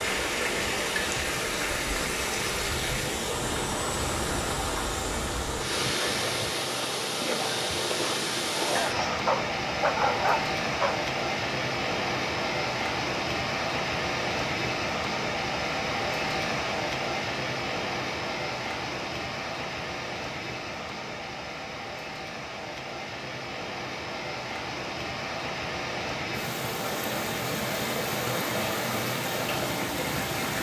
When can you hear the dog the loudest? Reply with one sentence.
The volume of the dog peaks at 10 seconds.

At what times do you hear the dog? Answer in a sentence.
You can hear the dog from 8.8 to 10.9 s.